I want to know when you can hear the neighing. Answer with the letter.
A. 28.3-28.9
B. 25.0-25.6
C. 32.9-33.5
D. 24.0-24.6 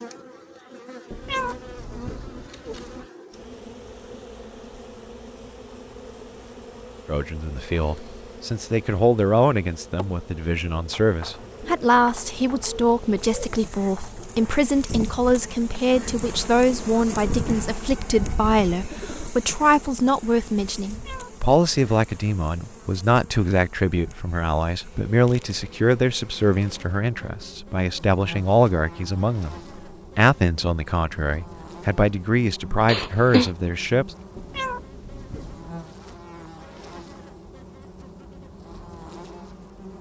C.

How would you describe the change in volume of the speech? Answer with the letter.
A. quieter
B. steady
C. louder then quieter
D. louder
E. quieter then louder
B.